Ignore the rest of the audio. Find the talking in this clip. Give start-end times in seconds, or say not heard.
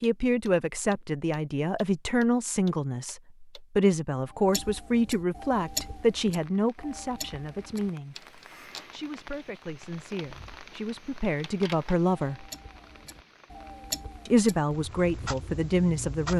0.0-12.4, 14.2-16.3.